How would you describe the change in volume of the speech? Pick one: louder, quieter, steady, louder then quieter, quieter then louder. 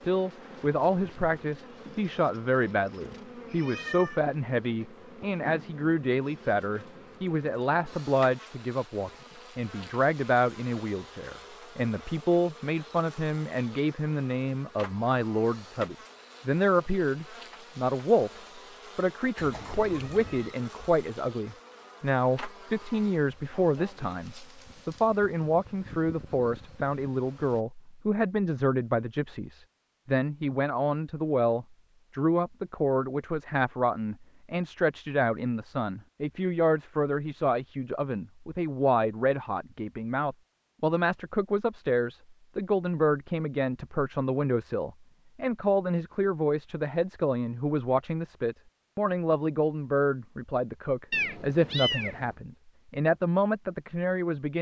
steady.